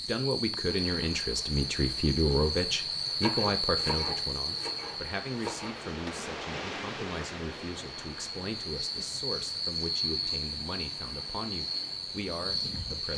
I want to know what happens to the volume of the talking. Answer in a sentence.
The loudness of the talking goes down.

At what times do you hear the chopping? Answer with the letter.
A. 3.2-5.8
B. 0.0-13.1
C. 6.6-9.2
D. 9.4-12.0
A.